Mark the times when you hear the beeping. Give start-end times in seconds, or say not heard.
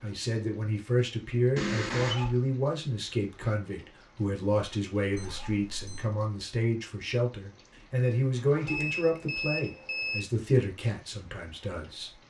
1.6-2.2, 5.2-6.2, 8.7-10.2.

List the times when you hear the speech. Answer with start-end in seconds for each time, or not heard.
0.0-12.2.